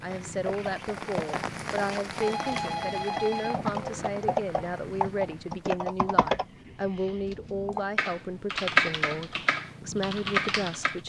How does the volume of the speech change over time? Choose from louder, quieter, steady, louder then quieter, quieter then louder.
steady.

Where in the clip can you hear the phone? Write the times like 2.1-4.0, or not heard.
1.9-3.6, 7.0-7.5.